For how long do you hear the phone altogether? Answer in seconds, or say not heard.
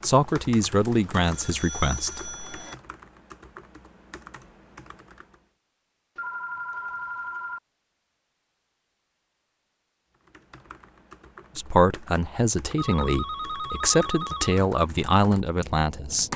5 s.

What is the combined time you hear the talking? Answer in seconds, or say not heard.
7 s.